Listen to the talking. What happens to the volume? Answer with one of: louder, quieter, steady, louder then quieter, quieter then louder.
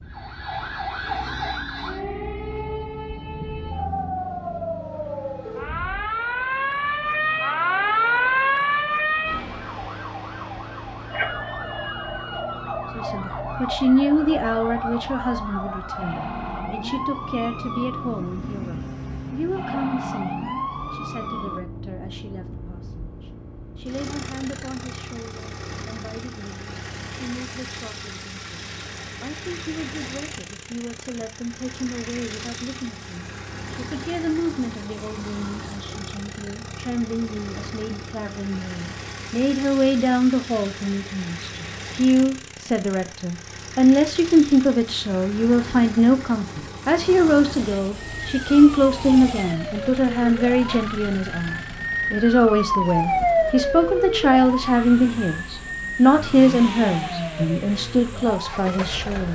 quieter then louder.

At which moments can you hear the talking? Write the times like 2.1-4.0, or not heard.
12.9-23.1, 23.8-59.3.